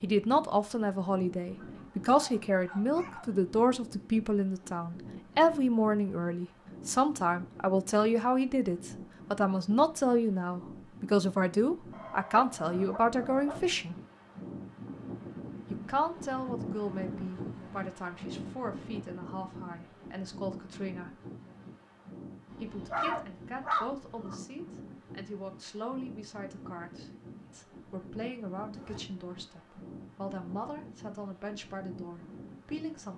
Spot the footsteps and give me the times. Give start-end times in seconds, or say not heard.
not heard.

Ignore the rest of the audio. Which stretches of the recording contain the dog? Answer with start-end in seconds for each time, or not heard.
1.6-3.4, 11.9-13.7, 22.5-24.4.